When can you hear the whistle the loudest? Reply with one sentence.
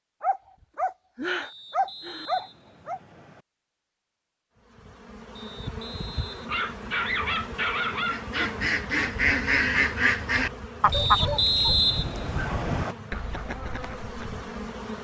The volume of the whistle peaks at 12 seconds.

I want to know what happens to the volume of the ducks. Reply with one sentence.
The loudness of the ducks goes down.